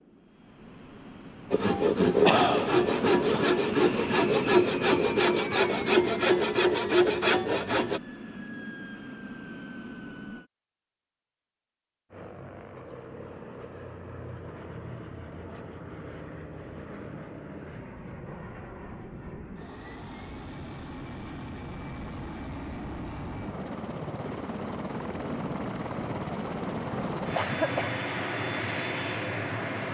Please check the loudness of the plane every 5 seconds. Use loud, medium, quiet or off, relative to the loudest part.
loud, medium, medium, medium, medium, loud.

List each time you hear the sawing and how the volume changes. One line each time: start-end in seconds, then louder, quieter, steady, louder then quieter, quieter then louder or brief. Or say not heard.
1.5-8.0 steady.